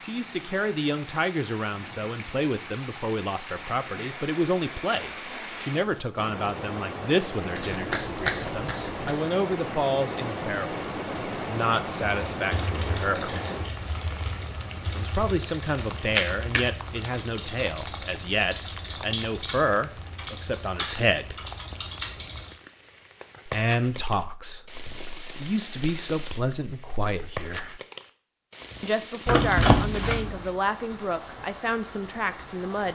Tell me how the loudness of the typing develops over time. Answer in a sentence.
The volume of the typing goes up.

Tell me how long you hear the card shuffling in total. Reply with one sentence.
You can hear the card shuffling for 4 seconds altogether.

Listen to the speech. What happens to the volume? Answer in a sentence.
The volume of the speech stays about the same.